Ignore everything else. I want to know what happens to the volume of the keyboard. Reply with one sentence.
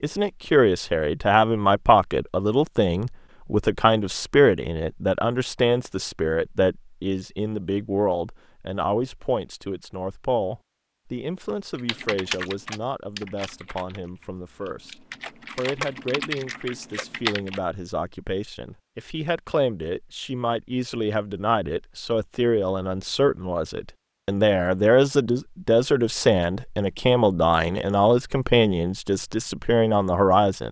The loudness of the keyboard goes down, then up.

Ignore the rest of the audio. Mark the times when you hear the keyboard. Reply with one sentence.
You can hear the keyboard from 11.8 to 17.6 s.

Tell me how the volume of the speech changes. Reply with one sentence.
The loudness of the speech goes down, then up.